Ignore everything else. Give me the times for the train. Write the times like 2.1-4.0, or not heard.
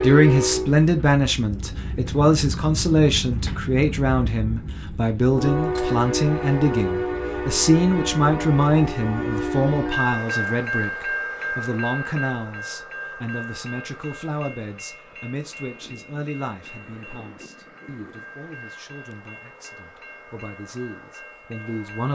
0.0-22.0.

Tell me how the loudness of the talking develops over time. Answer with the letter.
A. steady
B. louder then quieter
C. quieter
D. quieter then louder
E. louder
C.